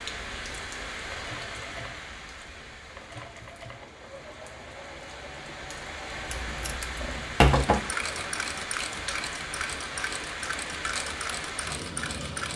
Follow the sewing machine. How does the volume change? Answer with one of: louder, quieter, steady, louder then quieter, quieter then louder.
louder.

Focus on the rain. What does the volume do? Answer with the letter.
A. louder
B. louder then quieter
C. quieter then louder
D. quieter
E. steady
C.